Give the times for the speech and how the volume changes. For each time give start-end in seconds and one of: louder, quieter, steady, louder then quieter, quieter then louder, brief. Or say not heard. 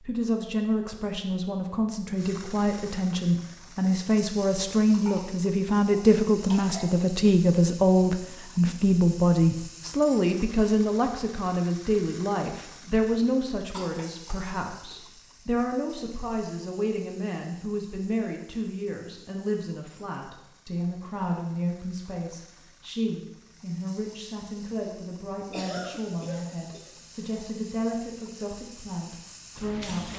0.0-30.1 quieter.